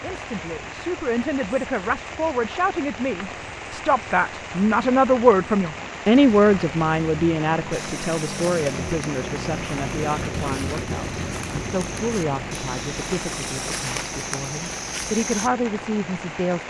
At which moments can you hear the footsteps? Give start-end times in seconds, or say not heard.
7.7-15.5.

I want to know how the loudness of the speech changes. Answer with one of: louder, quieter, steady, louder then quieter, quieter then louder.
louder then quieter.